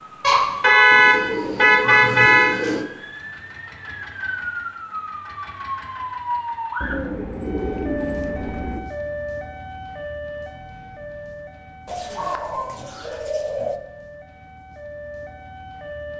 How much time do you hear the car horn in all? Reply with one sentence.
You can hear the car horn for 2 seconds altogether.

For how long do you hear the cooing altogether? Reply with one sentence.
You can hear the cooing for 6 seconds altogether.